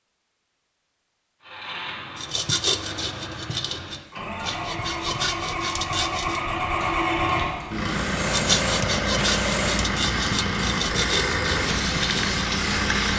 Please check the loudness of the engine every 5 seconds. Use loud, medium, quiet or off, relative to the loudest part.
medium, loud, loud.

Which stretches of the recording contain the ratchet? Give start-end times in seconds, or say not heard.
not heard.